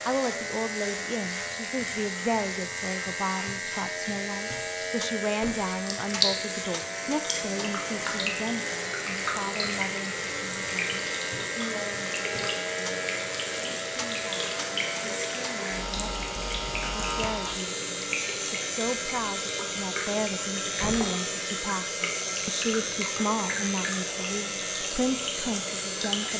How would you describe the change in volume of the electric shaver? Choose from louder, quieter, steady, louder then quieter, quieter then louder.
steady.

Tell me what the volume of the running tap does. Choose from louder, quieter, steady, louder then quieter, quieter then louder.
louder.